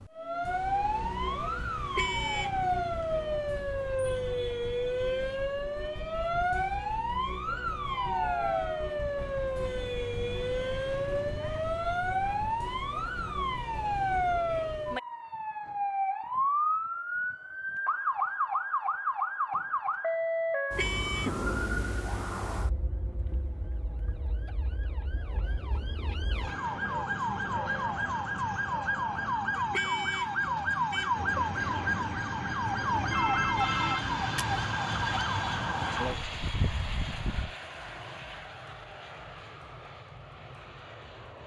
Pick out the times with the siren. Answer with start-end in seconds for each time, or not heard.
0.0-37.5.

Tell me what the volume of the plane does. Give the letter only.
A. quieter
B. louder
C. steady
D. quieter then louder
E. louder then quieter
A.